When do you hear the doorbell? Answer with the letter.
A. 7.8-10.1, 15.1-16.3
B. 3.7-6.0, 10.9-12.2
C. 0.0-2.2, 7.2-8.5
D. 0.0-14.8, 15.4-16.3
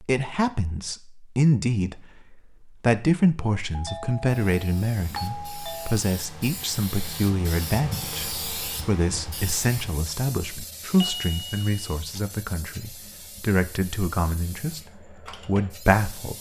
B.